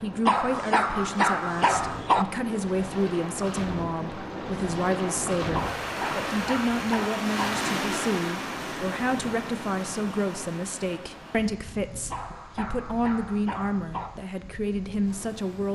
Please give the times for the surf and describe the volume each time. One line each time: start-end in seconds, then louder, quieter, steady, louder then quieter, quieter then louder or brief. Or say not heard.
0.0-15.6 louder then quieter.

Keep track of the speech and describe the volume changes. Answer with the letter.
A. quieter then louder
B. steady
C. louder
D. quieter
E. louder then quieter
B.